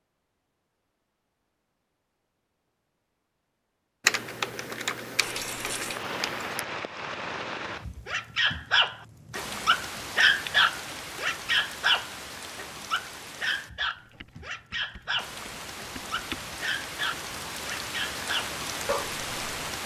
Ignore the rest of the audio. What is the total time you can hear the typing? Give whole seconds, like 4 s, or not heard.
5 s.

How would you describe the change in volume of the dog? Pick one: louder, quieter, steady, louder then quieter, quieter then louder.
quieter.